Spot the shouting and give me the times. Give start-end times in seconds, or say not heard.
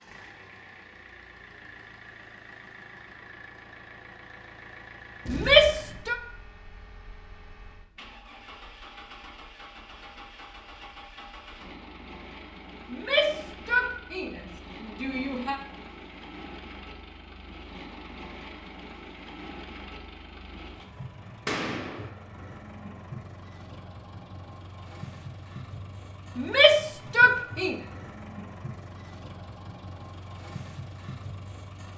5.2-6.2, 12.9-15.6, 26.4-27.8.